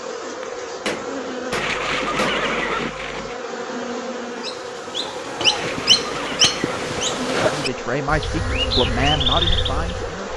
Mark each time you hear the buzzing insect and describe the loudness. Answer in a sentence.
You can hear the buzzing insect from 0.0 to 10.3 s, at a steady volume.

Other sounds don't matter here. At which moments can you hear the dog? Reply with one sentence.
The dog can't be heard in this clip.